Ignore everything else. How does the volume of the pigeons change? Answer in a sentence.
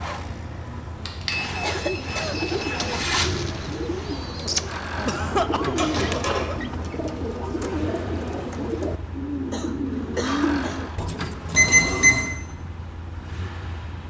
The volume of the pigeons stays about the same.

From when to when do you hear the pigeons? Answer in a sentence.
You can hear the pigeons from 1.2 to 12.2 s.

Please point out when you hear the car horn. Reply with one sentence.
The car horn can't be heard in this clip.